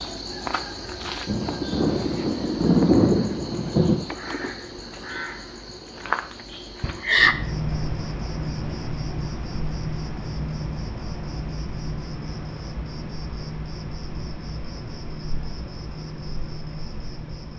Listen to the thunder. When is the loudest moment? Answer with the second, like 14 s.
3 s.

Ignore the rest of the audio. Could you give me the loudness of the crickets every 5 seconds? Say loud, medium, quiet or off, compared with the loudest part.
medium, loud, medium, medium.